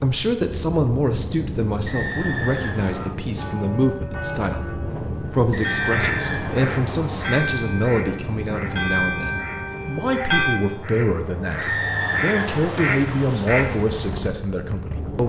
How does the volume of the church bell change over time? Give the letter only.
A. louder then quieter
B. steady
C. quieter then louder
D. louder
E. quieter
D.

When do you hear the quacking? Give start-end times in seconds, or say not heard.
5.8-14.2.